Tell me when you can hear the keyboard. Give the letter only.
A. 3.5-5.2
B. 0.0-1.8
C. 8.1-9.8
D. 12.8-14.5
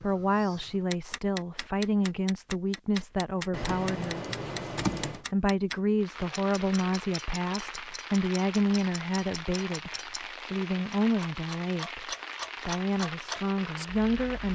A.